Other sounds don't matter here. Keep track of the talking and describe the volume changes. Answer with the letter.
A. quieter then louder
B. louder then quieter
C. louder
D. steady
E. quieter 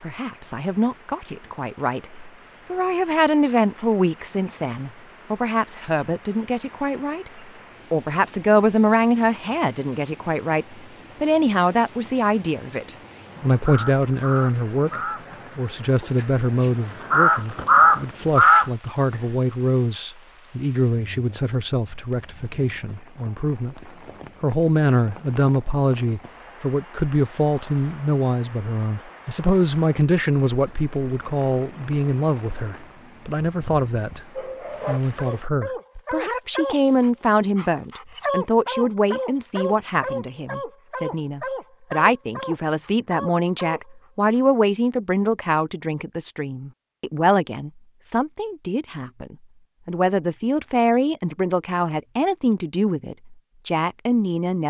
D.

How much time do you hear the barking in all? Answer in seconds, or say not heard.
10 s.